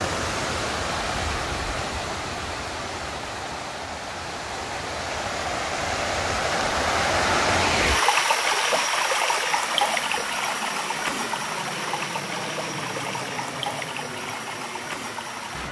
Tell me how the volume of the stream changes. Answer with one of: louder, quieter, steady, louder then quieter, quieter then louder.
louder then quieter.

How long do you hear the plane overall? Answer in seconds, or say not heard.
6 s.